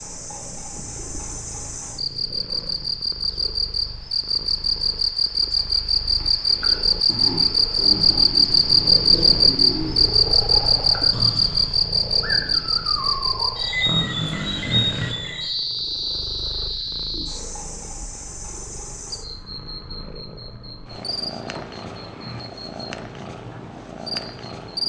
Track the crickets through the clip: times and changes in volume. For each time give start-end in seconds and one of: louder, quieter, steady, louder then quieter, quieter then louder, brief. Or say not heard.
0.0-24.8 louder then quieter.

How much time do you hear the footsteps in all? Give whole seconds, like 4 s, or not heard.
not heard.